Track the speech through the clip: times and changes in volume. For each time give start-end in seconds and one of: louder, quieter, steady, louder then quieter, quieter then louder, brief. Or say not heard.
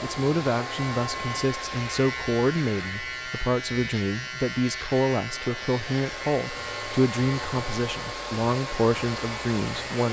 0.0-10.0 steady.